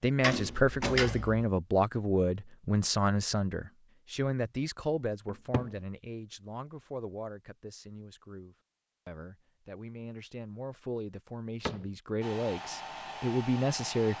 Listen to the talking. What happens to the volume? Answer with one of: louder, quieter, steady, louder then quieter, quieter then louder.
quieter then louder.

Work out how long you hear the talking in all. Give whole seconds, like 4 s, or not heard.
14 s.